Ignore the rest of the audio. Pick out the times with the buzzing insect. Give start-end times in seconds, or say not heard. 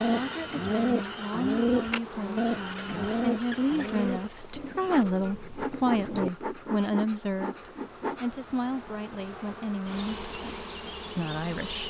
0.0-11.8.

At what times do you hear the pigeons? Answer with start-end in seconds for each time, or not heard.
0.0-6.3.